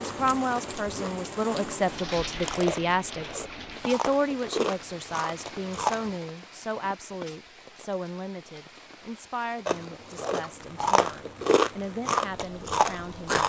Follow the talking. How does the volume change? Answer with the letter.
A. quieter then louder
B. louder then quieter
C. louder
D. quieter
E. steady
D.